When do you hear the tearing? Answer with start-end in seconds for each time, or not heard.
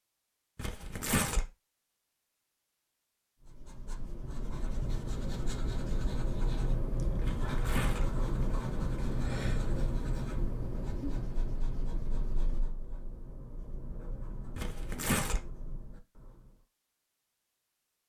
0.6-1.5, 7.2-8.1, 14.6-15.4.